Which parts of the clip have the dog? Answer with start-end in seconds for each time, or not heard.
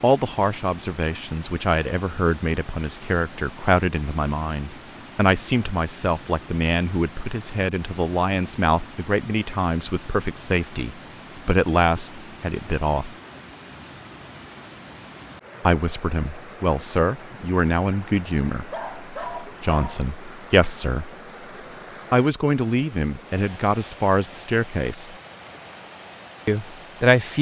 18.7-20.1.